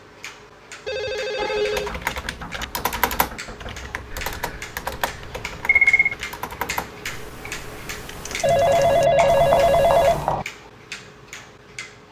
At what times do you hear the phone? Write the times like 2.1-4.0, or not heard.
0.8-1.9, 4.2-6.2, 8.4-10.4.